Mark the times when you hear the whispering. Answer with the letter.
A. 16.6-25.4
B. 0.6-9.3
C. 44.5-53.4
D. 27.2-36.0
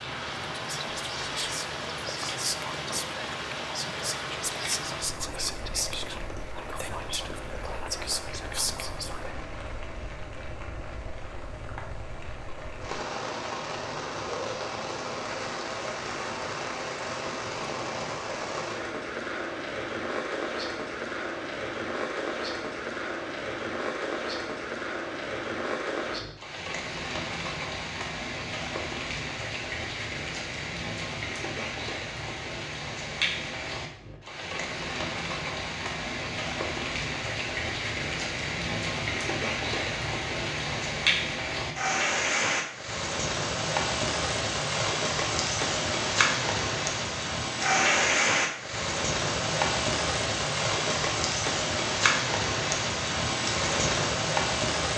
B.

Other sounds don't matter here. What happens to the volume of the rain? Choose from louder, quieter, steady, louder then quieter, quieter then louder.
louder.